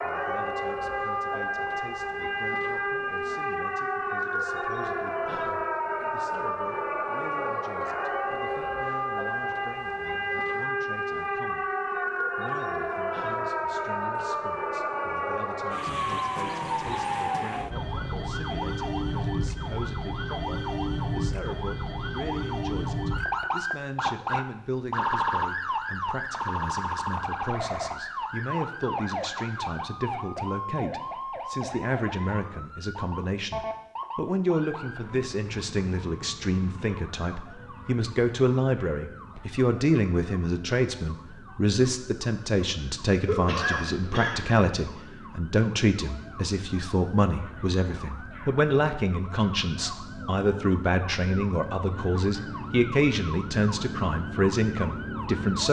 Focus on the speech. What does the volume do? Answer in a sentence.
The loudness of the speech goes up.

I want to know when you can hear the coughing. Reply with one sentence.
You can hear the coughing from 43.2 to 44.6 s.